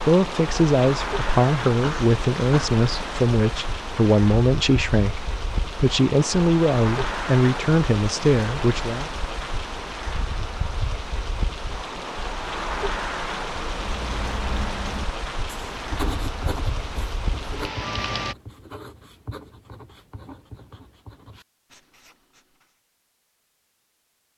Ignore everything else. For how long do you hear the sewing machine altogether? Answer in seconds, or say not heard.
not heard.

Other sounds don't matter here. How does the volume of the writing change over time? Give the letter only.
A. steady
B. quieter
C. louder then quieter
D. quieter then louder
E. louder
B.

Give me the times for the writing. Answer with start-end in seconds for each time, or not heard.
13.8-22.8.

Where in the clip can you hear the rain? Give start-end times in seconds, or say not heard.
0.0-18.4.